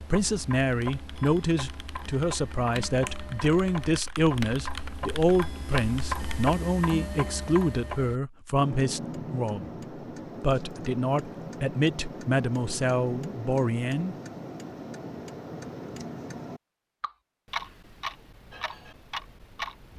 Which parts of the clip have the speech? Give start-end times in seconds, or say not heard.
0.0-9.8, 10.4-14.2.